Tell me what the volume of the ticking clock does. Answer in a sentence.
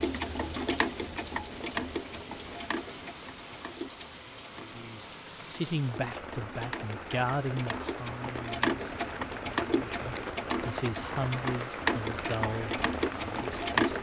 The loudness of the ticking clock goes down, then up.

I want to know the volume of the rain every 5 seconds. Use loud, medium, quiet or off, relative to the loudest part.
medium, loud, loud.